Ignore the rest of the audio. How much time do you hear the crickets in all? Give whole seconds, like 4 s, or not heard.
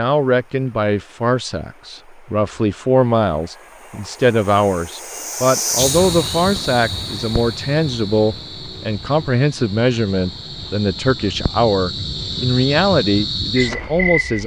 9 s.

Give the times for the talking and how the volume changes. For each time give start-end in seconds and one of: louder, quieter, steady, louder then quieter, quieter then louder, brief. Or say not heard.
0.0-14.4 steady.